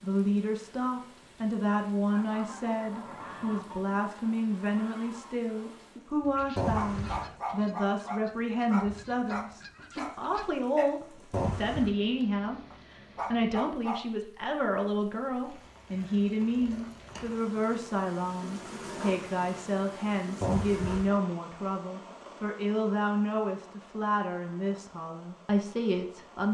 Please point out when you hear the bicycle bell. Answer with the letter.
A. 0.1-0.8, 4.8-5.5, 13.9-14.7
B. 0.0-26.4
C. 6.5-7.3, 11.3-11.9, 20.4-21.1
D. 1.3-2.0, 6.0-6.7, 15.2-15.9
C.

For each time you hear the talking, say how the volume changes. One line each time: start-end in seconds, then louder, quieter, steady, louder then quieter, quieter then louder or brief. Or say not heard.
0.0-26.4 steady.